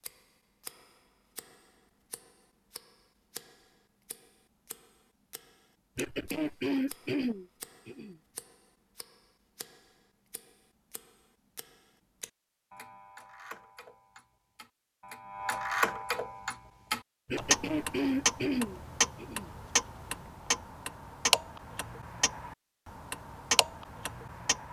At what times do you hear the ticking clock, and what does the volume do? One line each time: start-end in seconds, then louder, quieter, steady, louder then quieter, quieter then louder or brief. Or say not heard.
0.0-24.6 louder.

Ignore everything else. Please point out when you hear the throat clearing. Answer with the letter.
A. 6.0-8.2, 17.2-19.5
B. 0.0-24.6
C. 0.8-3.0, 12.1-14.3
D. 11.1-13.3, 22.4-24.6
A.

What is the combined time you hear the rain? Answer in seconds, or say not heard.
not heard.